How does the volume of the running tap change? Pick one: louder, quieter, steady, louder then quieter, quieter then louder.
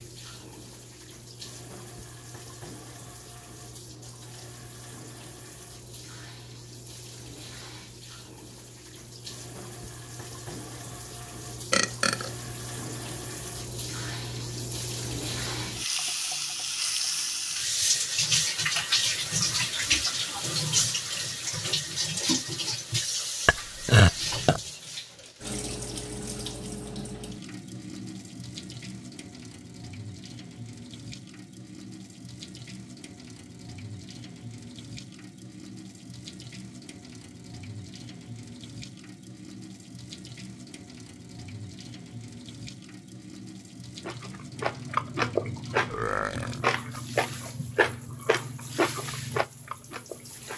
louder then quieter.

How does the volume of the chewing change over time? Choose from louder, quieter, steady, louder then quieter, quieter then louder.
quieter.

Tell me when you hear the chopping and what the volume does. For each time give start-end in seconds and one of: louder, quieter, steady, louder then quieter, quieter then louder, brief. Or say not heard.
not heard.